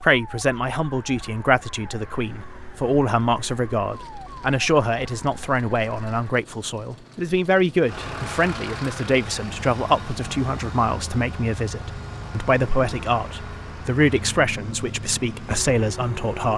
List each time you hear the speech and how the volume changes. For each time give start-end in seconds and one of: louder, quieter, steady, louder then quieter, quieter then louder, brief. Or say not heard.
0.0-16.5 steady.